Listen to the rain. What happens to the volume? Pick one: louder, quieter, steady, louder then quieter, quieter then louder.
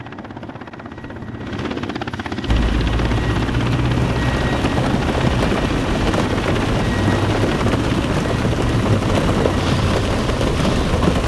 steady.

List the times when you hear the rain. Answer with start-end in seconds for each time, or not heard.
2.5-11.2.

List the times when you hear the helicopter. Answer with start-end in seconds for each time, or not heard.
0.0-11.1.